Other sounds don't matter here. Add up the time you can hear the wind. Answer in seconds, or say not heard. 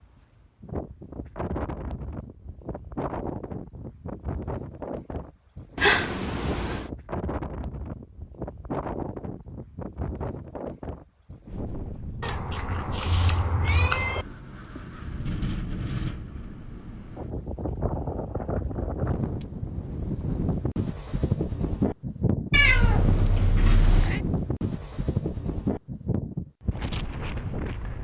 28 s.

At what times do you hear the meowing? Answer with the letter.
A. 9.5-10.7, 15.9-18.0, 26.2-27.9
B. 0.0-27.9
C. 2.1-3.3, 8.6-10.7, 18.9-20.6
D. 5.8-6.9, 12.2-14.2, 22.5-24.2
D.